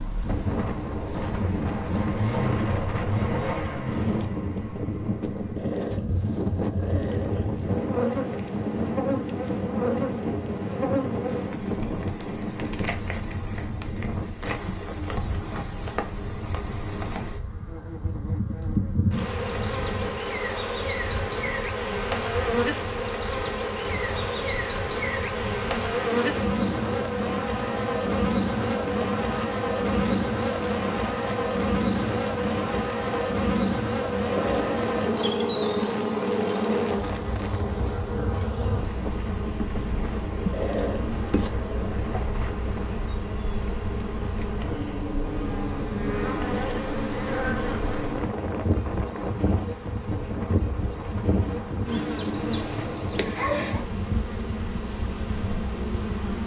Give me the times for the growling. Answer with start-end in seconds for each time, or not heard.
5.5-7.5, 34.2-34.9, 40.5-42.0.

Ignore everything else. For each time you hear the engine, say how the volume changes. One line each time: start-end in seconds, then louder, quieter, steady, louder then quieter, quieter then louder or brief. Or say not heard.
0.0-5.7 louder then quieter.